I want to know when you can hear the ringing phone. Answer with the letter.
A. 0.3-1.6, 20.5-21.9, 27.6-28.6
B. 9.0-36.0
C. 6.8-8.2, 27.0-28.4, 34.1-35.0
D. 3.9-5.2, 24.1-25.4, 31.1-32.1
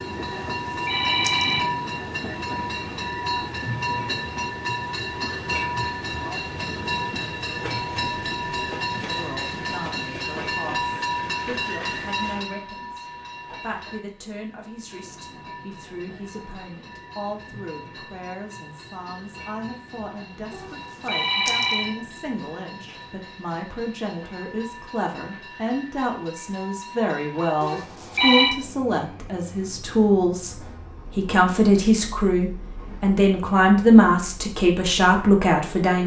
A.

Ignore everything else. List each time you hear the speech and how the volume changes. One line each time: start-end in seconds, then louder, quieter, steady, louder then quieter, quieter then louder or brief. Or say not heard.
9.0-36.0 louder.